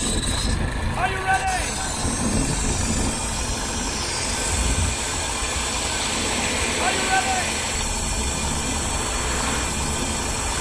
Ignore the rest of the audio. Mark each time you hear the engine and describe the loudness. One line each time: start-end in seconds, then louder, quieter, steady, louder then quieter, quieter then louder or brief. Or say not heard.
0.0-10.5 steady.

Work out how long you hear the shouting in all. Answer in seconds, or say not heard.
2 s.